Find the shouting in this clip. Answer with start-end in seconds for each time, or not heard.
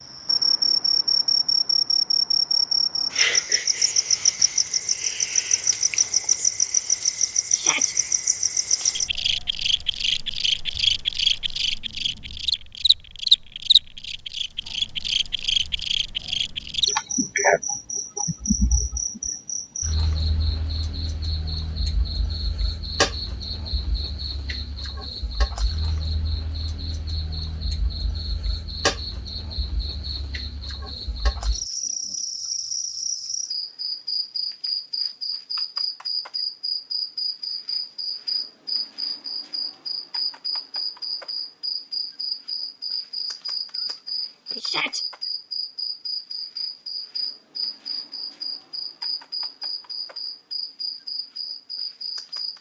7.5-8.0, 44.6-45.0.